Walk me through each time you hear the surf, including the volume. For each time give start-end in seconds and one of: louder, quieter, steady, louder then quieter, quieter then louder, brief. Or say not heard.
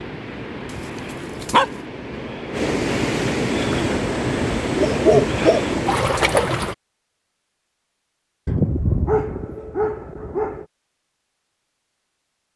0.0-6.8 louder.